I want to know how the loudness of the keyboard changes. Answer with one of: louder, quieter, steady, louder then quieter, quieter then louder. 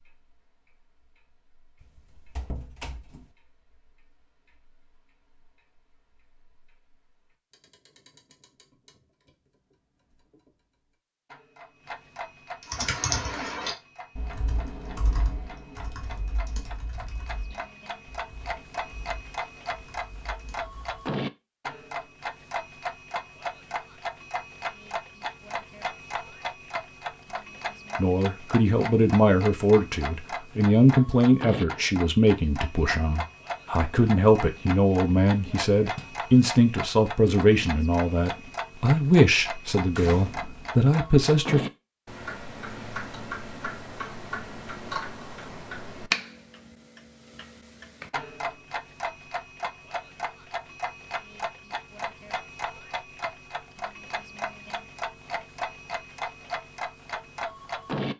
quieter.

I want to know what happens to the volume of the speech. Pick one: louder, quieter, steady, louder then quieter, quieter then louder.
steady.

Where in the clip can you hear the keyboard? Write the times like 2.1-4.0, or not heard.
12.6-20.9.